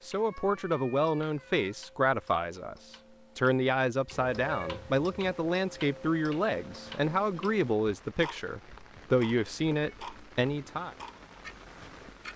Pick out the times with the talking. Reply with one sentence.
The talking can be heard from 0.0 to 10.9 s.